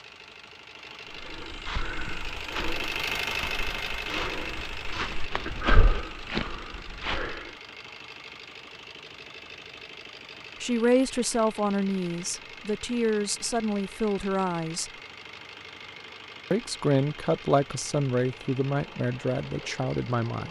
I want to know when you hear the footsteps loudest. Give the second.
6 s.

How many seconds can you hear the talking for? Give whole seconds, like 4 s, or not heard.
8 s.